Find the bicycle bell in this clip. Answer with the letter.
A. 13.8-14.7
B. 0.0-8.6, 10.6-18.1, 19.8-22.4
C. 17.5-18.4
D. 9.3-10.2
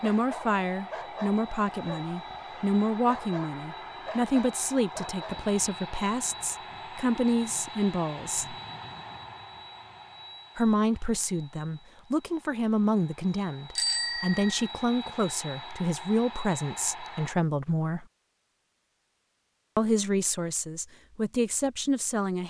A.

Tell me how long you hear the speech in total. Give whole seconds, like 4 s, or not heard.
19 s.